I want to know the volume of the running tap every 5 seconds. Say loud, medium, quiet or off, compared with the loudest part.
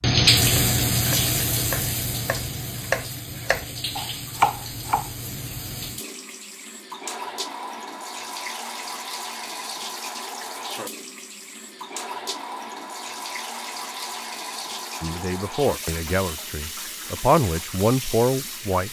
loud, medium, medium, medium.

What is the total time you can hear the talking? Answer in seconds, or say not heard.
4 s.